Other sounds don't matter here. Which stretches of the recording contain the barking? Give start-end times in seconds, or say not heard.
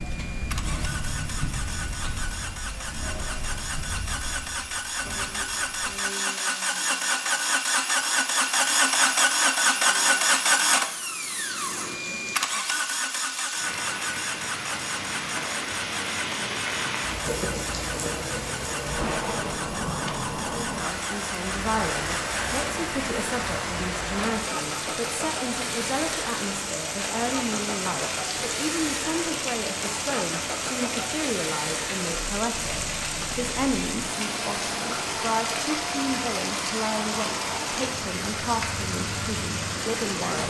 not heard.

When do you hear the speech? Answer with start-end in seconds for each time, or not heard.
20.4-40.4.